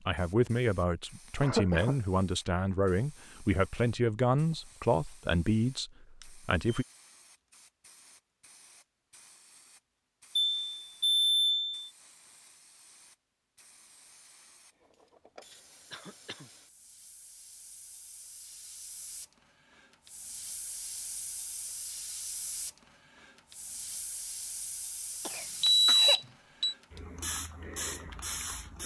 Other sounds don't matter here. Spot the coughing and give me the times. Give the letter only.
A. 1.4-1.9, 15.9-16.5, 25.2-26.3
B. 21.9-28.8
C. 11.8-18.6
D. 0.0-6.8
A.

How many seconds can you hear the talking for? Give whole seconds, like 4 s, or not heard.
7 s.